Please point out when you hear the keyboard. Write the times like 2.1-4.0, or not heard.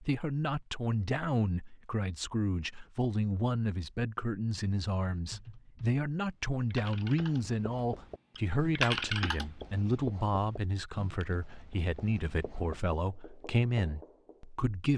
5.2-6.0, 6.7-7.6, 8.3-9.7.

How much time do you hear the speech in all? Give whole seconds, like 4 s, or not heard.
15 s.